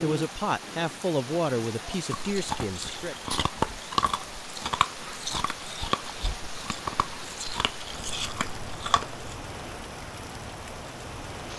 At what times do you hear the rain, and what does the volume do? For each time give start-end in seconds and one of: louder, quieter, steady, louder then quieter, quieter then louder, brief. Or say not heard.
0.0-11.5 steady.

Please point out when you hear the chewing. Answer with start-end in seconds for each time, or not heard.
2.1-9.3.